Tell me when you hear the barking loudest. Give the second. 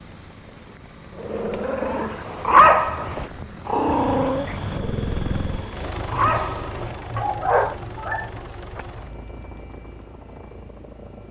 3 s.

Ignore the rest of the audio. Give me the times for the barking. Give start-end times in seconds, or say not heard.
1.2-8.2.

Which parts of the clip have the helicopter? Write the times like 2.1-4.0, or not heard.
0.0-11.2.